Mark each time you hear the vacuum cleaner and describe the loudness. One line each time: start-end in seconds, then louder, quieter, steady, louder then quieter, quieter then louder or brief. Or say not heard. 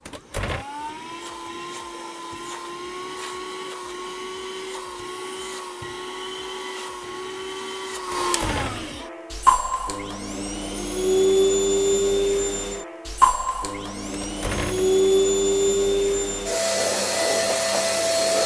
0.0-18.4 louder.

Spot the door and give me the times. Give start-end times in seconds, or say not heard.
0.1-0.7, 8.1-9.0, 14.1-14.9.